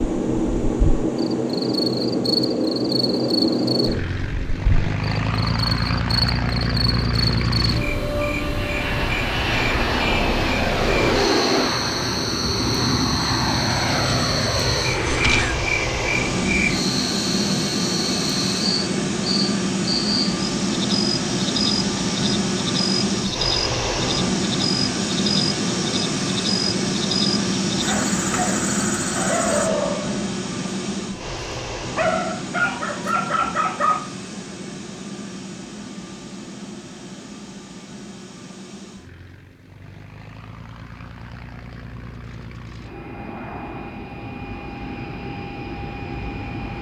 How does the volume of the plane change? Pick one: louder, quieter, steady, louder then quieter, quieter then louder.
quieter.